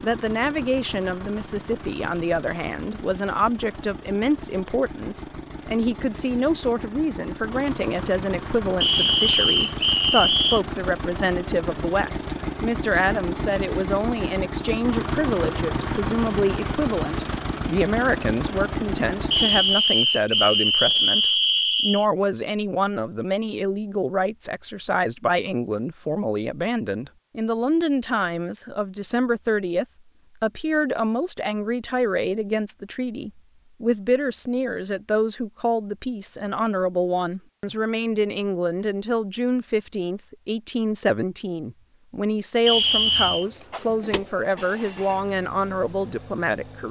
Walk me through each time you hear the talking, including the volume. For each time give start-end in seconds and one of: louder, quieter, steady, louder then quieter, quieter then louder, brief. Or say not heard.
0.0-46.8 steady.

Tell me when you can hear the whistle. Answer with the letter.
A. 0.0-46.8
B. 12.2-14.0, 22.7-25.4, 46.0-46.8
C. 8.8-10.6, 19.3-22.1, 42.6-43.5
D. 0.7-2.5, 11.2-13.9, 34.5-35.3
C.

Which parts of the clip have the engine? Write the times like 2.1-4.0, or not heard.
0.0-19.8, 42.7-46.8.